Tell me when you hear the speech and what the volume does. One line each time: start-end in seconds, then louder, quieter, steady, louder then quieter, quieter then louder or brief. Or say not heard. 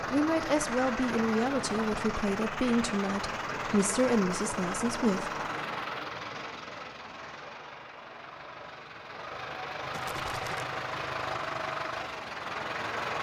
0.1-5.3 steady.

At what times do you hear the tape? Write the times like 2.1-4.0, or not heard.
not heard.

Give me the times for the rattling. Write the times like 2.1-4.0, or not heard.
9.9-10.7.